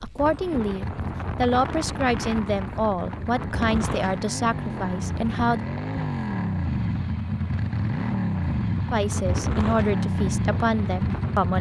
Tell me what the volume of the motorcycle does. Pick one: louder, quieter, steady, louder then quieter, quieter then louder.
louder.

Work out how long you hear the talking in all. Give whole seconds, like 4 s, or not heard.
8 s.